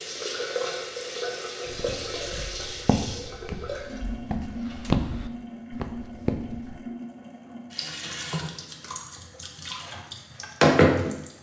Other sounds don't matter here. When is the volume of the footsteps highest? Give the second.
5 s.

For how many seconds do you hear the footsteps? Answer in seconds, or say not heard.
5 s.